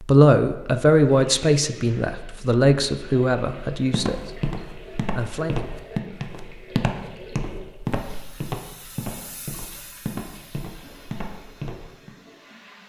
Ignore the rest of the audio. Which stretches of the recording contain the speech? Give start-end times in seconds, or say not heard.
0.0-4.4, 5.1-5.5.